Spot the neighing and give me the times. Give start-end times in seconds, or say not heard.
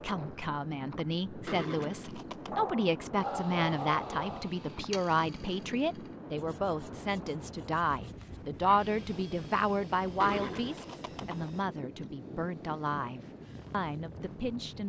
1.4-2.7, 10.2-11.4.